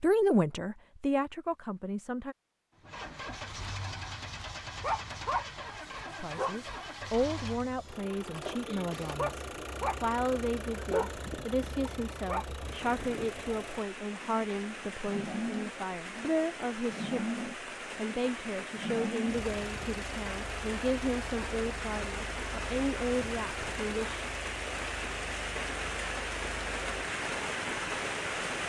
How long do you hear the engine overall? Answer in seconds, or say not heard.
26 s.